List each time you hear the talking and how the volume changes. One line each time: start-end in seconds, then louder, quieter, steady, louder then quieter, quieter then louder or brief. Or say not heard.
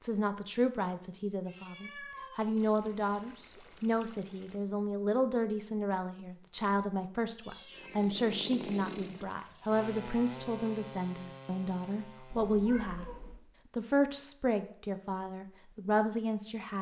0.0-13.1 steady
13.8-16.7 brief.